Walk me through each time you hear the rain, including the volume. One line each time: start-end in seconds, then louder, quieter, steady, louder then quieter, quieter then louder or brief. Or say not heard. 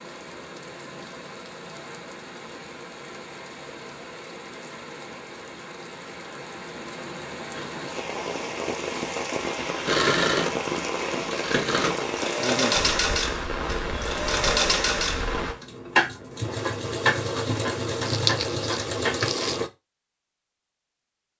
0.0-15.6 louder.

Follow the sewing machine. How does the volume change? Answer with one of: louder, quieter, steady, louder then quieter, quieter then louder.
steady.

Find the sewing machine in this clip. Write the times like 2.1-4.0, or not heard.
9.8-19.7.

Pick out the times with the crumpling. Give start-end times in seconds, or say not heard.
18.1-19.6.